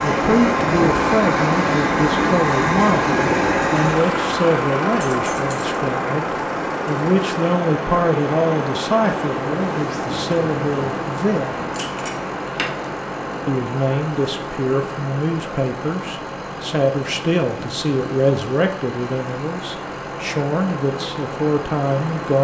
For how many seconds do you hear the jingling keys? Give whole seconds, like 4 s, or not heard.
2 s.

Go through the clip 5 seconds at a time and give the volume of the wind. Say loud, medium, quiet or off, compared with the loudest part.
loud, loud, loud, medium, medium.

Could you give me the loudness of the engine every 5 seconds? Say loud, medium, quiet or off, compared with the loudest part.
loud, medium, quiet, quiet, quiet.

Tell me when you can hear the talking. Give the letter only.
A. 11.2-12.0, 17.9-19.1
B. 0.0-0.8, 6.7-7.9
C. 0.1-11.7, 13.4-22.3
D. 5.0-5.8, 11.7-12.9
C.